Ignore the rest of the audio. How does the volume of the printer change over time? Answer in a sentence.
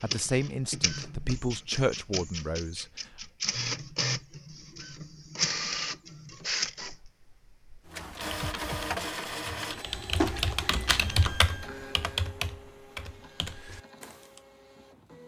The loudness of the printer goes up, then down.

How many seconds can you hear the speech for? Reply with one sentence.
The speech can be heard for 3 seconds in total.